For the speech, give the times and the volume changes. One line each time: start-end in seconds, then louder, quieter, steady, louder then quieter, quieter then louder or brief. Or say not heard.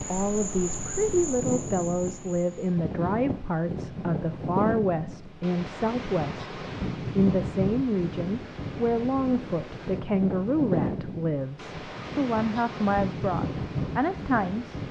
0.1-14.8 steady.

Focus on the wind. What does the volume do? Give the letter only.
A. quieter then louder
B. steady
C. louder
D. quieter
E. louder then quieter
B.